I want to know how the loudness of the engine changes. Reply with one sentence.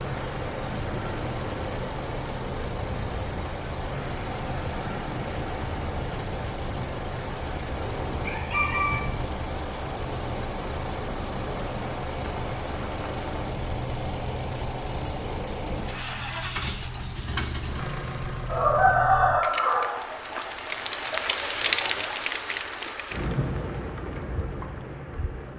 The loudness of the engine stays about the same.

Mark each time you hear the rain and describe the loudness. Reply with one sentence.
The rain can be heard from 0.0 to 25.5 s, getting louder.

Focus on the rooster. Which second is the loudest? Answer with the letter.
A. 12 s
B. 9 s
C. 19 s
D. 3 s
C.